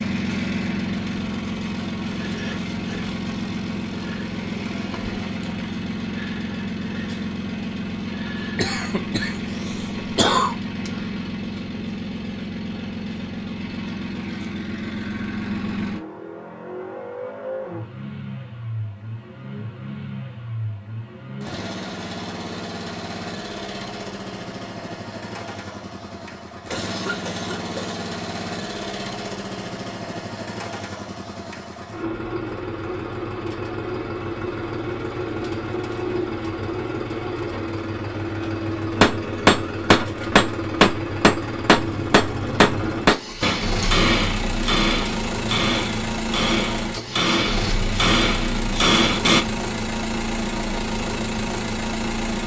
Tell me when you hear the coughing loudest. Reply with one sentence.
The loudest moment of the coughing is at 10 seconds.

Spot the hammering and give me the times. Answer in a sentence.
The hammering can be heard from 39.0 to 49.5 s.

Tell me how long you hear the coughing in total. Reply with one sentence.
You can hear the coughing for 3 seconds altogether.